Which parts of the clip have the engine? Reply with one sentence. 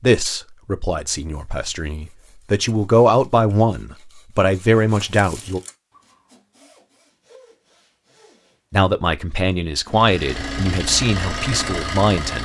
The engine can be heard from 9.8 to 12.4 s.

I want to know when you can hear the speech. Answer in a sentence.
The speech can be heard from 0.0 to 5.6 s and from 8.7 to 12.4 s.